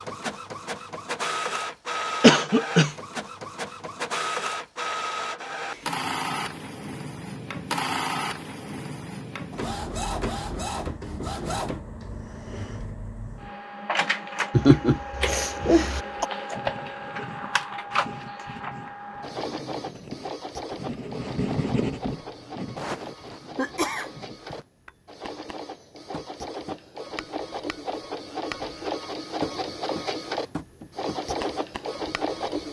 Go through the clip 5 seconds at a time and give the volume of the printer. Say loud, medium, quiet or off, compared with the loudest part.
loud, loud, loud, loud, medium, loud, loud.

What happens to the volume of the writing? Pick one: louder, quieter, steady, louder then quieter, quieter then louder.
louder then quieter.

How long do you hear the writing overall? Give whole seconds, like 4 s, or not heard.
8 s.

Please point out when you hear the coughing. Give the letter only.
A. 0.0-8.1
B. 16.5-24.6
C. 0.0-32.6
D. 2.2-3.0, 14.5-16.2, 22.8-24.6
D.